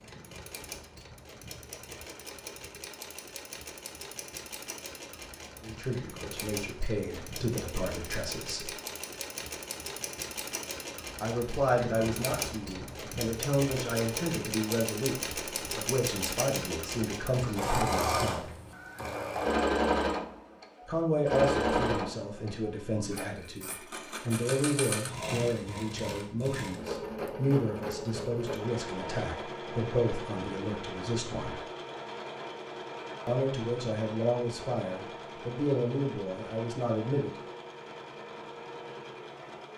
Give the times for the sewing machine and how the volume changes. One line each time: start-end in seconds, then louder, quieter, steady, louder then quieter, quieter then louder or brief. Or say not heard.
0.0-39.7 louder then quieter.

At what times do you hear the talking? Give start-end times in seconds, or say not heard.
5.6-8.8, 11.2-18.5, 20.9-31.6, 33.2-37.3.